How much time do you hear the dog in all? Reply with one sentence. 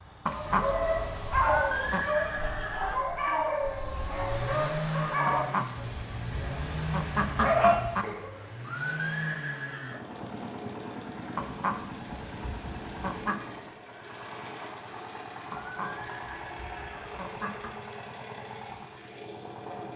You can hear the dog for 8 seconds altogether.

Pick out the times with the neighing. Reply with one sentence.
The neighing can be heard from 1.4 to 3.0 s, from 8.6 to 9.9 s and from 15.5 to 17.1 s.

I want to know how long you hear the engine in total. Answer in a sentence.
You can hear the engine for 20 seconds altogether.